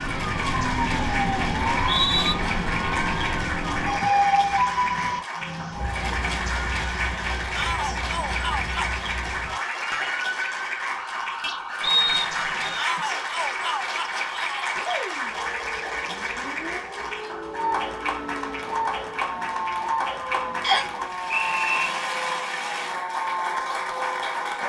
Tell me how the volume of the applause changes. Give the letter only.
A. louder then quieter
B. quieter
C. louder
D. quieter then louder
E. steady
E.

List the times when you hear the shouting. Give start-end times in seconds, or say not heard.
7.5-8.9, 12.8-14.8.